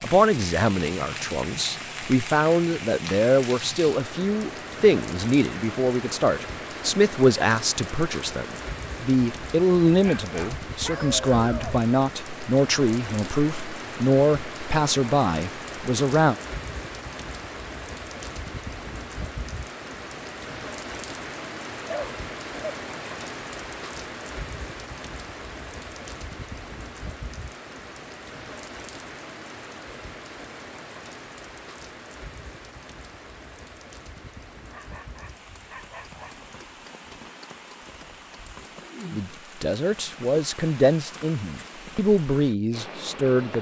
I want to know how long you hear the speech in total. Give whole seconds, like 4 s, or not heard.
21 s.